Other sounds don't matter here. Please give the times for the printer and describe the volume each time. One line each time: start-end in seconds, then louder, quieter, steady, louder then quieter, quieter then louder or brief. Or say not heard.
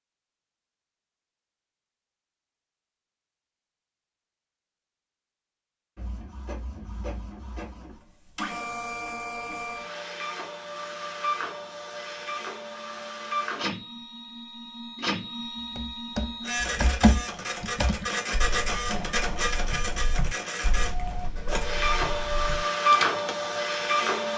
6.0-24.3 louder.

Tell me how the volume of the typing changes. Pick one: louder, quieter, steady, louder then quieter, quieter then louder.
quieter then louder.